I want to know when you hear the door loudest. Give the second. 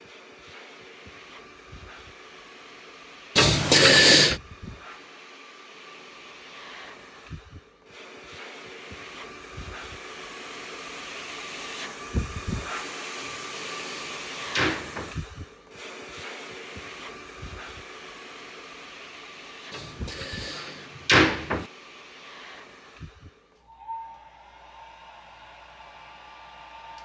4 s.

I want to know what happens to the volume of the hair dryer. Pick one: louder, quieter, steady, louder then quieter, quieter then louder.
louder then quieter.